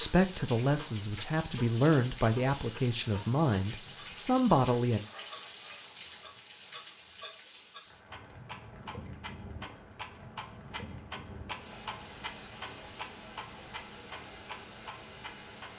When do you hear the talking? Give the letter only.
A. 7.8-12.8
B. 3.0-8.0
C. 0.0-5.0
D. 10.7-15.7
C.